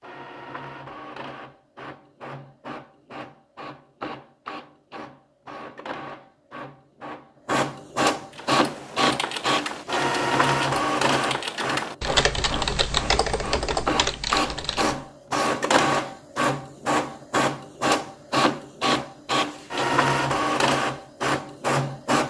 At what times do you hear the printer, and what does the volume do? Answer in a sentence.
The printer can be heard from 0.0 to 22.2 s, getting louder.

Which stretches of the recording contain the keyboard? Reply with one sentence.
You can hear the keyboard from 8.3 to 14.9 s.